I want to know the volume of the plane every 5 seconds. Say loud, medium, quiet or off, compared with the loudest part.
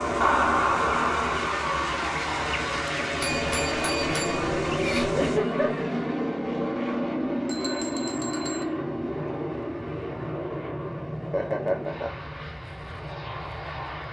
loud, loud, medium.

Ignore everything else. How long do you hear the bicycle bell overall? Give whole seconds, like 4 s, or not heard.
3 s.